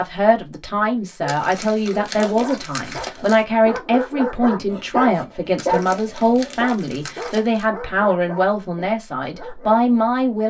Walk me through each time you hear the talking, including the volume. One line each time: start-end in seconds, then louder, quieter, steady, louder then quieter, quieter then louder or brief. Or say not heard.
0.0-10.4 steady.